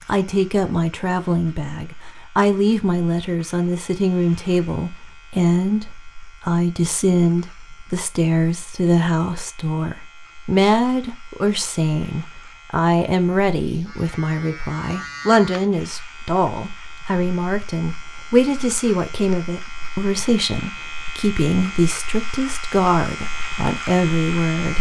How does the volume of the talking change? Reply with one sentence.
The loudness of the talking stays about the same.